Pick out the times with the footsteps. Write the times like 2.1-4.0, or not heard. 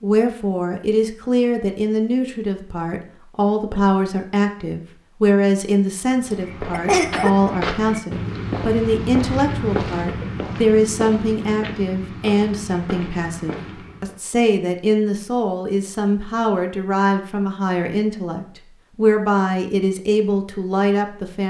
6.1-14.2.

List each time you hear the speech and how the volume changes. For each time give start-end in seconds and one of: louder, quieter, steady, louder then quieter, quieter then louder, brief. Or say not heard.
0.0-21.4 steady.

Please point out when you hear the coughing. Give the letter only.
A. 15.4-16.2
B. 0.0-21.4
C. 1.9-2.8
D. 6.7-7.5
D.